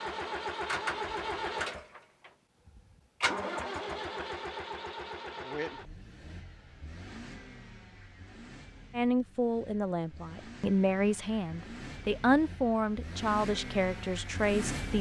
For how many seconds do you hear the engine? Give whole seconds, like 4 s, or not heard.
15 s.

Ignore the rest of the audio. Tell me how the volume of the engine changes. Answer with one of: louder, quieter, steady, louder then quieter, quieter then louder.
quieter then louder.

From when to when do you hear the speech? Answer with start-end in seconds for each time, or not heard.
8.9-14.9.